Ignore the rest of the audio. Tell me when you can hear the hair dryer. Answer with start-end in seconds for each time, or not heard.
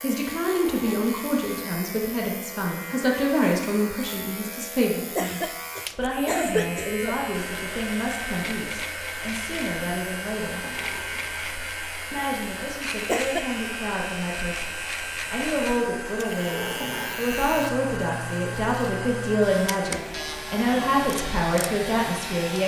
7.3-22.6.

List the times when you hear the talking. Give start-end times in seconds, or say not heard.
0.0-10.7, 12.1-22.6.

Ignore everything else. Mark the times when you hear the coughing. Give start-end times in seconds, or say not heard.
5.2-7.2, 13.1-13.5.